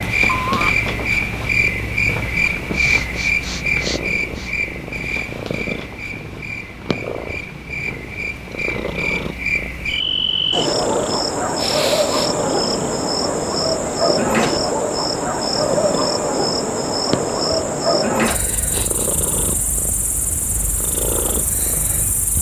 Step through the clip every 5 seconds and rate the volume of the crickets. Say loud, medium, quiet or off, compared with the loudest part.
loud, medium, loud, loud, medium.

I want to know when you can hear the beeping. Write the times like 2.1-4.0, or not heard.
0.2-0.8.